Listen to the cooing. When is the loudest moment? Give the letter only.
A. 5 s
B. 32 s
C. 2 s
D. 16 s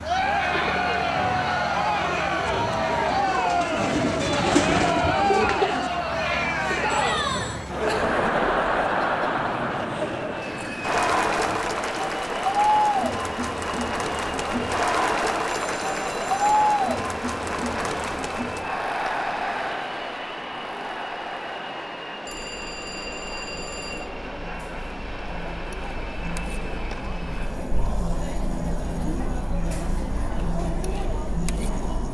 A.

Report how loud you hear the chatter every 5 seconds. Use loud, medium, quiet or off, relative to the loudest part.
loud, loud, loud, loud, quiet, medium, medium.